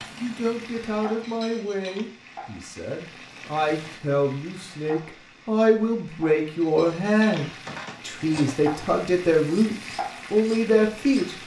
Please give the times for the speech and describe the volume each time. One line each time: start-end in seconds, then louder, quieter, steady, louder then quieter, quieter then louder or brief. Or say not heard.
0.1-11.4 louder.